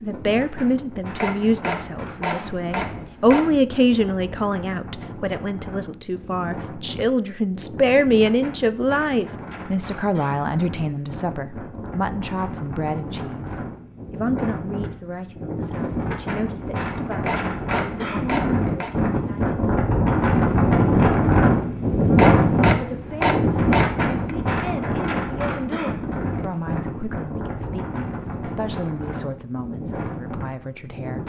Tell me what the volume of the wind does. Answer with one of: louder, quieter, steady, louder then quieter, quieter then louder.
louder then quieter.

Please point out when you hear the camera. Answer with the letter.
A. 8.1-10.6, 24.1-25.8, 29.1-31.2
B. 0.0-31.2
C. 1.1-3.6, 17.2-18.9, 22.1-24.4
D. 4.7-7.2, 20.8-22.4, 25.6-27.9
C.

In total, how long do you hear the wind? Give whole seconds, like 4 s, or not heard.
31 s.